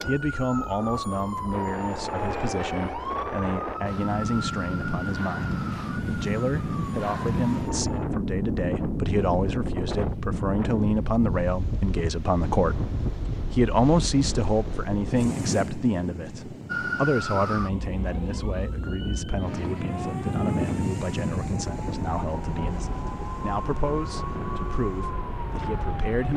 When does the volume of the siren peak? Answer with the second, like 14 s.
17 s.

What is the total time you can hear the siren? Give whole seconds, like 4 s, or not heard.
18 s.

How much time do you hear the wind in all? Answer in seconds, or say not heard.
26 s.